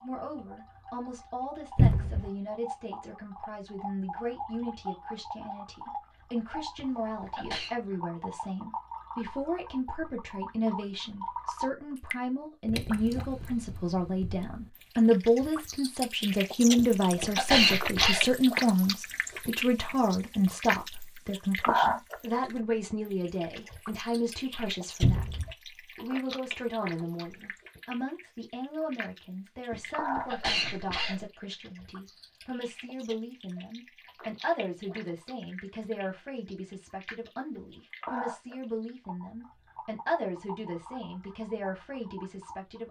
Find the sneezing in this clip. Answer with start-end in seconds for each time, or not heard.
6.8-7.8, 16.8-18.4, 29.7-31.2.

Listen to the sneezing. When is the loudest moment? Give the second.
18 s.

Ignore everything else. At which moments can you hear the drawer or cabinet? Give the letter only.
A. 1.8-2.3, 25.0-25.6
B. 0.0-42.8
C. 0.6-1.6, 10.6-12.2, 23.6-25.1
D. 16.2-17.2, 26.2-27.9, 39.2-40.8
A.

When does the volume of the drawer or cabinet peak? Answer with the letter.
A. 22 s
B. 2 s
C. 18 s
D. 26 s
B.